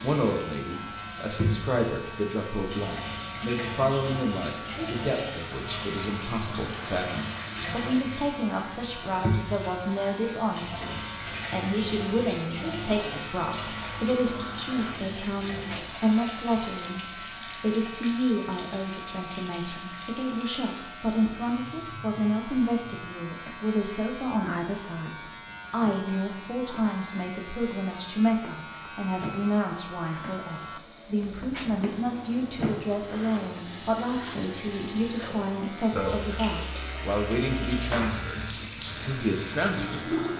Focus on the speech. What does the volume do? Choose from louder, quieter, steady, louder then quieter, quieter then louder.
steady.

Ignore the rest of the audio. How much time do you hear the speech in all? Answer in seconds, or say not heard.
40 s.